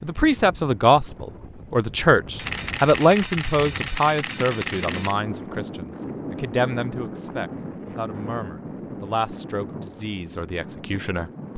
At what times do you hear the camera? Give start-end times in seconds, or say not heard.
2.4-5.2.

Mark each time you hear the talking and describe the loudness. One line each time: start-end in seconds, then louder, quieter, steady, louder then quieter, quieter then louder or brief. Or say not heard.
0.0-11.5 quieter.